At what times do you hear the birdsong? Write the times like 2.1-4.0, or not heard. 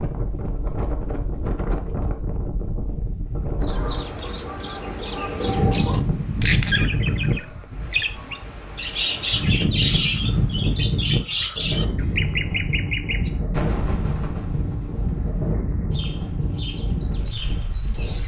3.6-18.2.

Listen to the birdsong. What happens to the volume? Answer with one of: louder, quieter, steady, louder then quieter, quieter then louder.
quieter.